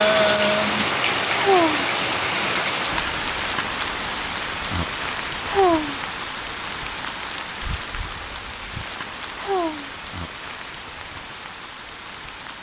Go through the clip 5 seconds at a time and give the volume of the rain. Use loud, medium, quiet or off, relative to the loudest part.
loud, medium, quiet.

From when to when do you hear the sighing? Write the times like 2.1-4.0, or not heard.
1.4-1.9, 5.5-6.0, 9.3-9.9.